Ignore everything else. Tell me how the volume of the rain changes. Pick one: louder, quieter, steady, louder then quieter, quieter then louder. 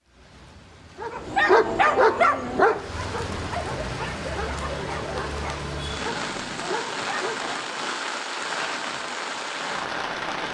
louder.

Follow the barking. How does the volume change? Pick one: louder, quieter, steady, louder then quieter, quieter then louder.
quieter.